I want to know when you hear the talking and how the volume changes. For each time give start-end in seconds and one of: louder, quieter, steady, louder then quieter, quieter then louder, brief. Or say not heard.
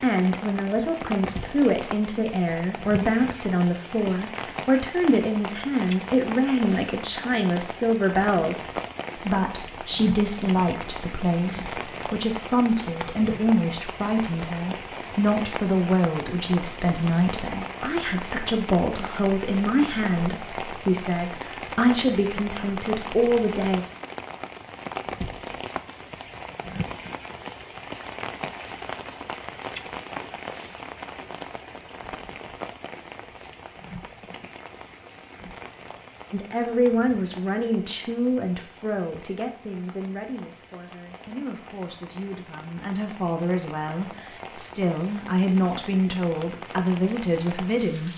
0.0-23.9 steady
36.3-48.1 quieter then louder.